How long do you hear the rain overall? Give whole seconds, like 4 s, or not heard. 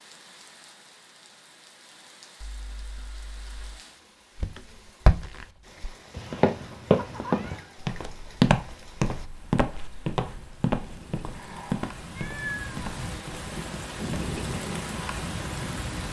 16 s.